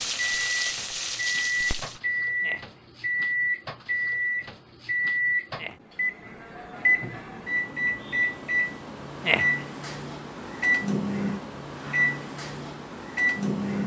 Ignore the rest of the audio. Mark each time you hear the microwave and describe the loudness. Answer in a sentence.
The microwave can be heard from 0.1 to 13.8 s, at a steady volume.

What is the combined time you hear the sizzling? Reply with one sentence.
The sizzling can be heard for 2 seconds in total.